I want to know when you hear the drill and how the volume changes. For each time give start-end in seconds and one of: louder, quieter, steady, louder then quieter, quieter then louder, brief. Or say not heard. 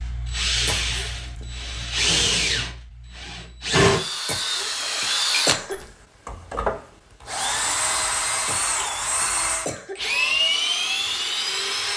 0.0-11.9 steady.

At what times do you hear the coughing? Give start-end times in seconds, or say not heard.
0.7-1.4, 4.2-5.9, 8.4-10.4.